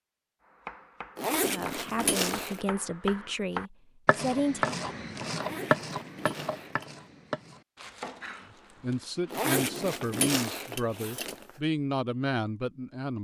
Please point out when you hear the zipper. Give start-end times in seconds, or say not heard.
1.1-2.6, 5.3-6.8, 9.3-11.5.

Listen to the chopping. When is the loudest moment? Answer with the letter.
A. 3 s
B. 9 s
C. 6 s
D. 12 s
C.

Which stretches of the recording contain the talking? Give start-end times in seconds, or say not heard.
1.4-4.8, 8.8-13.2.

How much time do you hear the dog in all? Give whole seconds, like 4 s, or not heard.
not heard.